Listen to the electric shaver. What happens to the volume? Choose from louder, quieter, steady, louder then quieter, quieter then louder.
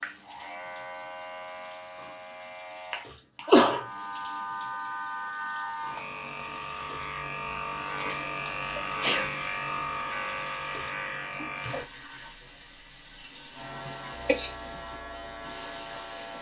louder then quieter.